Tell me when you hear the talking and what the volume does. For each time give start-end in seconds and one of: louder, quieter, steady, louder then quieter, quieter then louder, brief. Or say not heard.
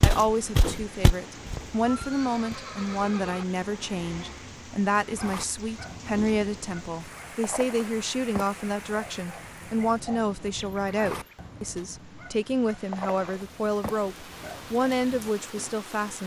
0.0-16.2 steady.